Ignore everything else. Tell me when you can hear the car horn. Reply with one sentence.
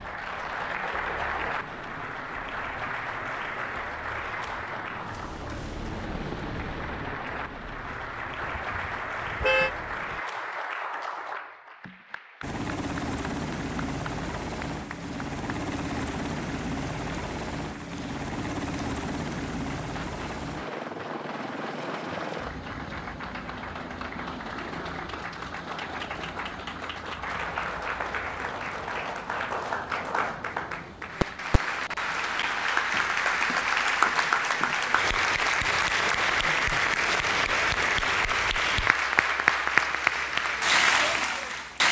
You can hear the car horn from 8.4 to 9.7 s.